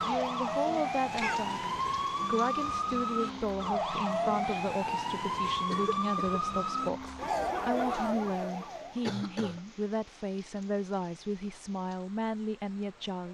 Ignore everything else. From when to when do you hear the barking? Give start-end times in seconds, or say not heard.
not heard.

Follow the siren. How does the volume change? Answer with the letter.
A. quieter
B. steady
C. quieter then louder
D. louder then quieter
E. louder
B.